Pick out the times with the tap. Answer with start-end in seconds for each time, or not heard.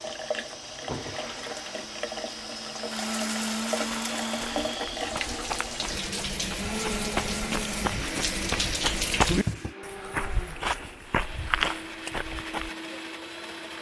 0.0-9.8.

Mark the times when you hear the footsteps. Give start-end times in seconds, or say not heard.
3.9-12.7.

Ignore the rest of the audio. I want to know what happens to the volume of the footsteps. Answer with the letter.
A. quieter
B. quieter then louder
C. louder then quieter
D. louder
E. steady
D.